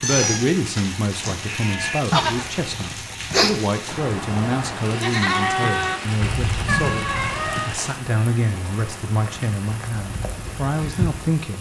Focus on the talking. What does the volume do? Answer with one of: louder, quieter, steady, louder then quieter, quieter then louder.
steady.